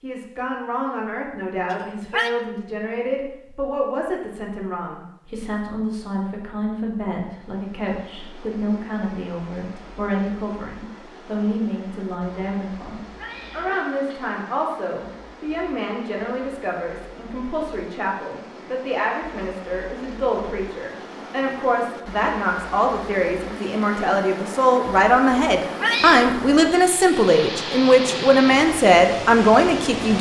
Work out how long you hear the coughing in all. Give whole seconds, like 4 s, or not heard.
2 s.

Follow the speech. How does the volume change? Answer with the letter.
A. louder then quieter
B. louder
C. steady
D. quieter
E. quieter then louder
B.